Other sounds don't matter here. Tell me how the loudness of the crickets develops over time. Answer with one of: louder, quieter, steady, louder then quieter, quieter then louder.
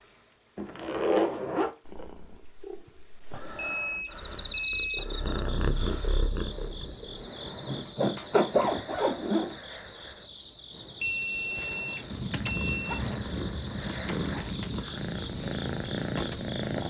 steady.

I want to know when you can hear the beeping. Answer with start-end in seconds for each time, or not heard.
3.5-5.0, 11.0-13.0.